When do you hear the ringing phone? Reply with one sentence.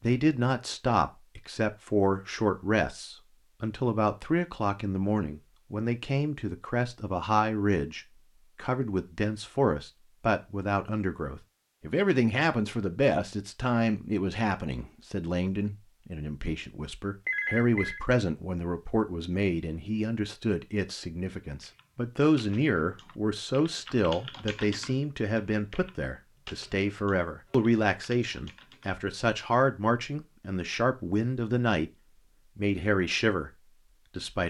The ringing phone can be heard from 17.2 to 18.1 s.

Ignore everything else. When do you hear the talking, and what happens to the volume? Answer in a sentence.
The talking can be heard from 0.0 to 31.9 s, at a steady volume; and briefly from 32.5 to 34.4 s.